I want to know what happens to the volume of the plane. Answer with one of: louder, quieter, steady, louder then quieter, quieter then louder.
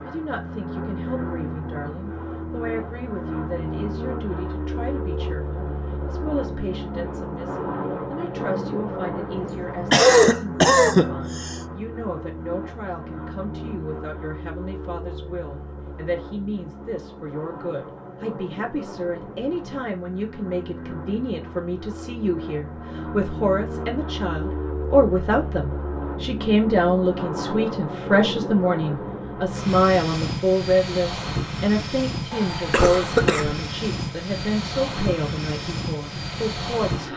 quieter then louder.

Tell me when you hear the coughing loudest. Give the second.
10 s.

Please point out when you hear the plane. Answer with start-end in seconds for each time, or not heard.
0.0-37.1.